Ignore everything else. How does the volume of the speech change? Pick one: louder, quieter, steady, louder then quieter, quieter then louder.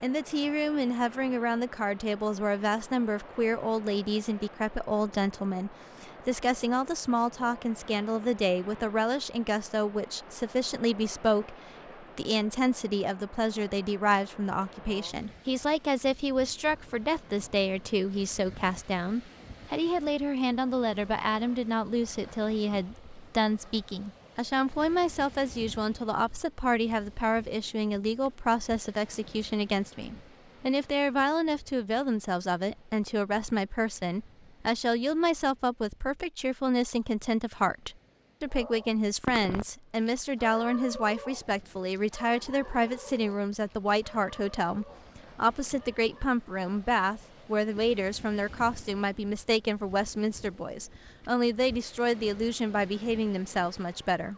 steady.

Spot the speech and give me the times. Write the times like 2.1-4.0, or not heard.
0.0-54.3.